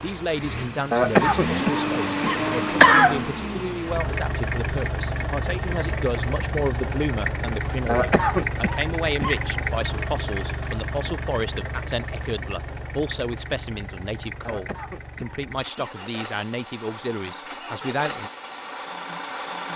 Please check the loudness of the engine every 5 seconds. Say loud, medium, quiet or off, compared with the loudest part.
loud, loud, medium, medium.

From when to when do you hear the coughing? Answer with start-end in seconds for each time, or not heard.
0.9-3.2, 7.8-9.4, 14.4-15.9.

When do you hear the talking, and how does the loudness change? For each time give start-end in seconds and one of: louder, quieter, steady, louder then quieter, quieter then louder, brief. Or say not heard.
0.0-18.3 steady.